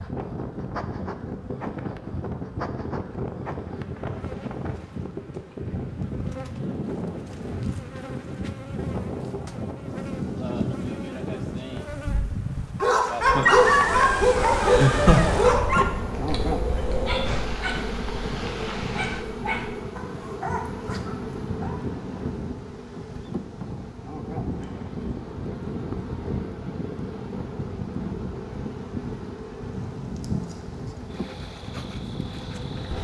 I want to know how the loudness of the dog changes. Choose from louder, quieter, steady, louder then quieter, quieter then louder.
quieter.